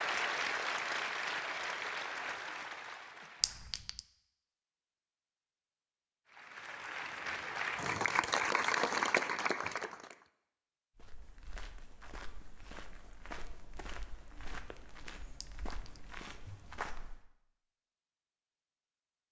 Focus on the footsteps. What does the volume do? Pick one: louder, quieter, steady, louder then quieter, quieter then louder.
steady.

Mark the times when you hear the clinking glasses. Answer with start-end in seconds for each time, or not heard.
3.4-4.0, 15.4-15.9.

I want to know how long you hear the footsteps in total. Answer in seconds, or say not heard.
6 s.